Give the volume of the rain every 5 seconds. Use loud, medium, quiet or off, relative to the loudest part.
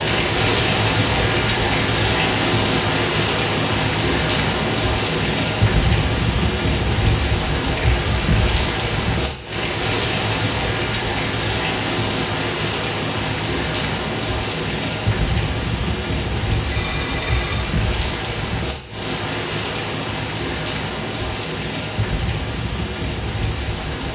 loud, loud, loud, medium, medium.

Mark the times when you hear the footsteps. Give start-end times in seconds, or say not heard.
not heard.